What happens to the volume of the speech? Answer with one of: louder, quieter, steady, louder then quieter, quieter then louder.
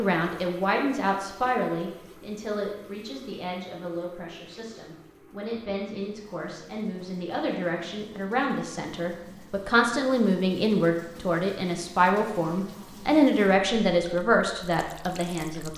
quieter then louder.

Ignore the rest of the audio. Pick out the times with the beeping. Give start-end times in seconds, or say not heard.
not heard.